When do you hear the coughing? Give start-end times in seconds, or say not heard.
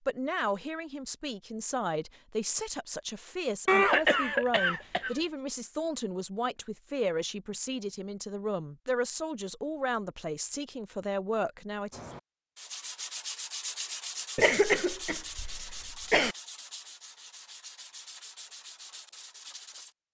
3.6-5.2, 14.3-16.4.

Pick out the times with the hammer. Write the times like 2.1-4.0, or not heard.
not heard.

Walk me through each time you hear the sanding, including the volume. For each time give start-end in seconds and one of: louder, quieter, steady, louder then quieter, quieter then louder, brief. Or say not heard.
11.9-19.9 quieter.